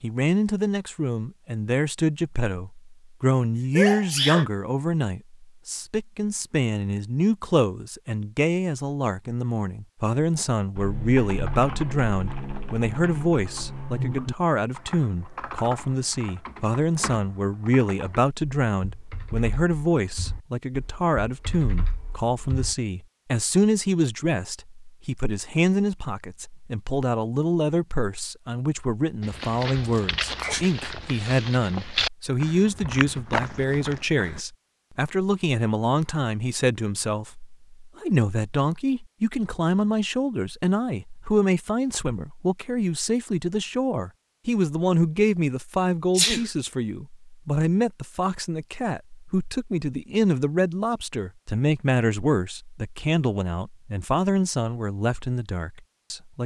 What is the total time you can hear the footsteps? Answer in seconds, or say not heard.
5 s.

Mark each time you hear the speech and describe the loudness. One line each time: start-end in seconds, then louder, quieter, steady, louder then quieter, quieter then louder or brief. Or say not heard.
0.0-56.4 steady.